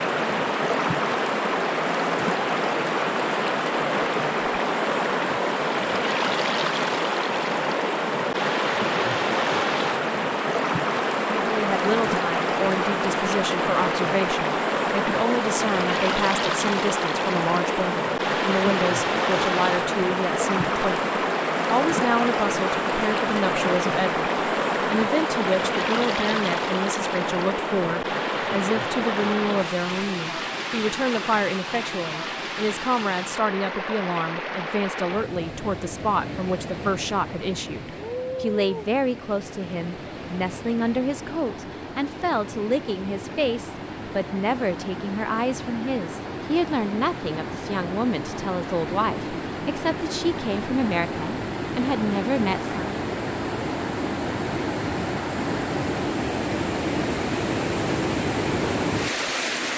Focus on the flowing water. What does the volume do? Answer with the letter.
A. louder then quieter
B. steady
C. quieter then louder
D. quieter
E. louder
C.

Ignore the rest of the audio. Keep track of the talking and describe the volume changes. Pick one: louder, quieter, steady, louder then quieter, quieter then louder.
steady.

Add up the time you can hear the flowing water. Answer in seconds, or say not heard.
60 s.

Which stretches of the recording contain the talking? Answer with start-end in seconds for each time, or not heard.
11.2-52.8.